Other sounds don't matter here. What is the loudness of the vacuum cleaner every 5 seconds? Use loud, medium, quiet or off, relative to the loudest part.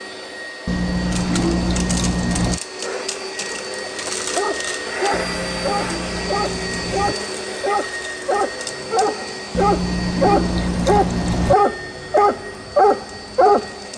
loud, loud, medium.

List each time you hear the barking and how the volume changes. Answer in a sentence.
You can hear the barking from 3.7 to 13.8 s, getting louder.